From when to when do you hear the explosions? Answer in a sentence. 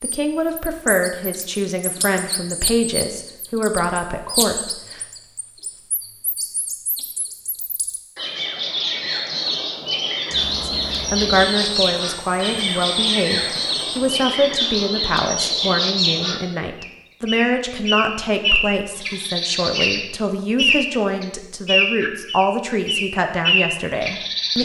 You can't hear the explosions here.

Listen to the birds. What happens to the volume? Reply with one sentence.
The loudness of the birds goes up.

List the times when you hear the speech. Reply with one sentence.
You can hear the speech from 0.0 to 5.0 s and from 10.6 to 24.5 s.